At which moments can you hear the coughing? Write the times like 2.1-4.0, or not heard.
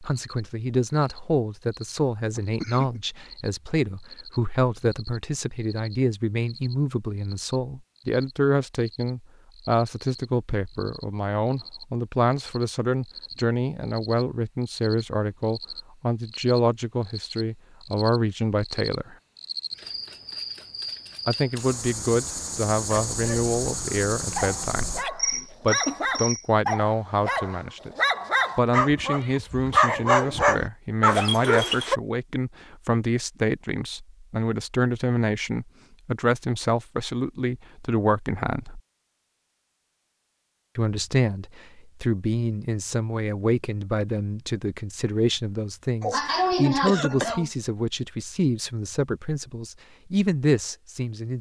2.4-3.0, 25.3-26.2, 46.0-47.5.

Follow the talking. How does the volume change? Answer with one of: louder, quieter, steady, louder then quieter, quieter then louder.
steady.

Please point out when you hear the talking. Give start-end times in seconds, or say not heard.
0.0-19.1, 21.2-27.9, 28.6-38.8, 40.8-51.3.